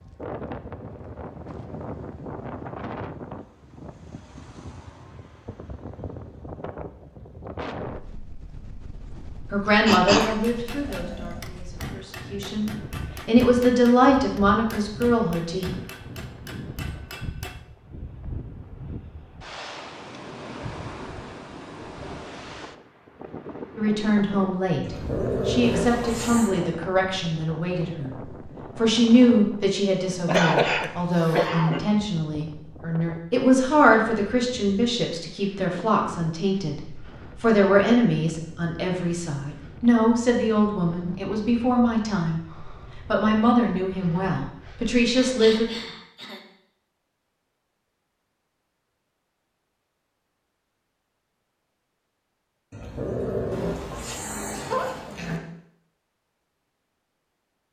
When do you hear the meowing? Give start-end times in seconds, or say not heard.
24.8-26.5, 52.7-55.4.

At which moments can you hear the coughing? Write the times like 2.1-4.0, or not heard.
9.8-11.4, 30.1-31.9, 45.1-46.4.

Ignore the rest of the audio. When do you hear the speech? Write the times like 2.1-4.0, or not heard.
9.5-15.7, 23.8-45.6.